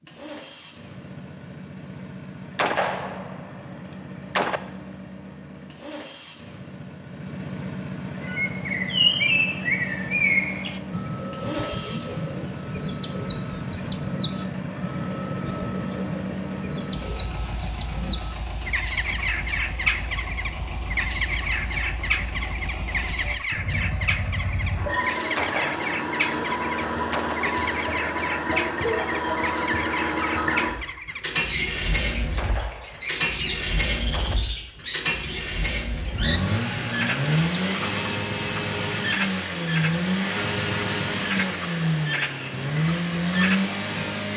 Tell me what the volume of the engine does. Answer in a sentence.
The loudness of the engine goes up.